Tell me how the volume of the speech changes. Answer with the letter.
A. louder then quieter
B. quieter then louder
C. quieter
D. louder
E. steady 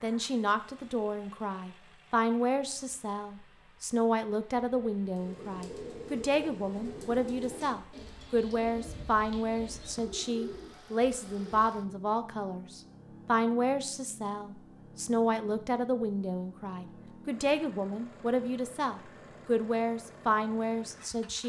E.